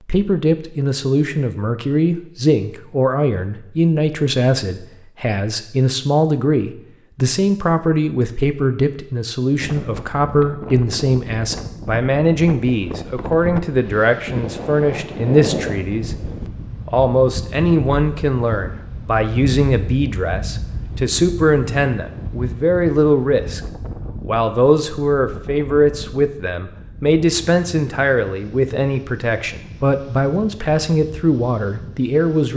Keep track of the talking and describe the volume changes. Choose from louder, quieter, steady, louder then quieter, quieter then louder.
steady.